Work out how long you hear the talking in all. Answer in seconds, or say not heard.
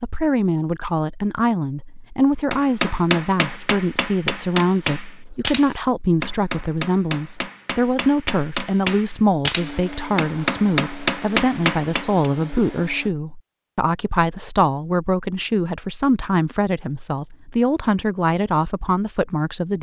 20 s.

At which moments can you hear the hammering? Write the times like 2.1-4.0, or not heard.
2.5-12.3.